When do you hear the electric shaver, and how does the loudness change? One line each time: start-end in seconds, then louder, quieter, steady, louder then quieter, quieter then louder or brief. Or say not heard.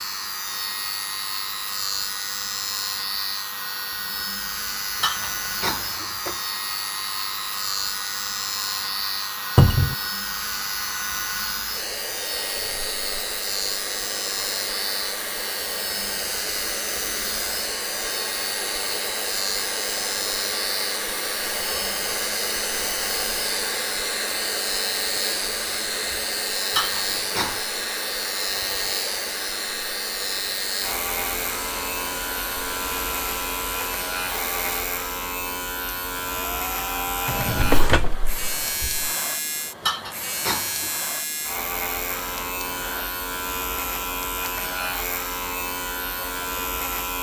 0.0-47.1 steady.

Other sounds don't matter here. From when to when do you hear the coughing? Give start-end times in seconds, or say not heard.
5.0-6.4, 26.7-27.6, 39.8-40.9.